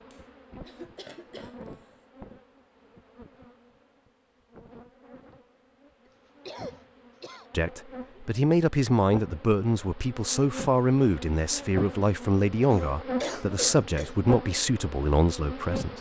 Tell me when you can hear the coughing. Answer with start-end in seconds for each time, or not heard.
0.1-1.9, 6.5-7.5, 12.7-14.2.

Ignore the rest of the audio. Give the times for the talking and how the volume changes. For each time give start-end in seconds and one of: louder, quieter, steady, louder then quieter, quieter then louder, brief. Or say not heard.
7.5-15.9 steady.